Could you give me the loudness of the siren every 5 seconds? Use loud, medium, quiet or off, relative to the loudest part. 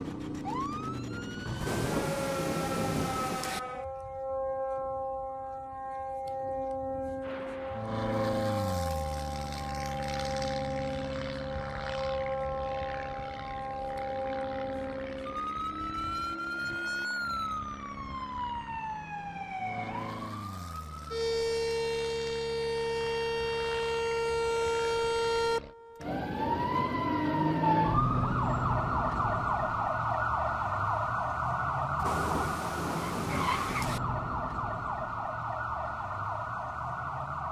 medium, medium, medium, medium, loud, loud, loud, medium.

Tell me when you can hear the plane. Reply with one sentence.
The plane can be heard from 7.2 to 25.8 s.